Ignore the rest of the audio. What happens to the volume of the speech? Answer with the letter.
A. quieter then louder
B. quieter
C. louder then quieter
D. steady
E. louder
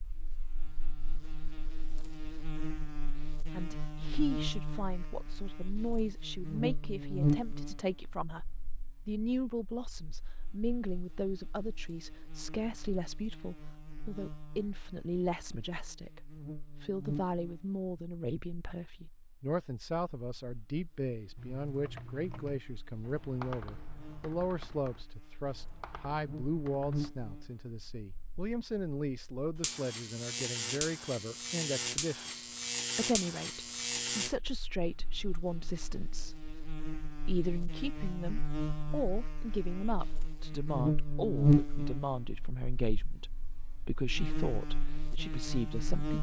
D.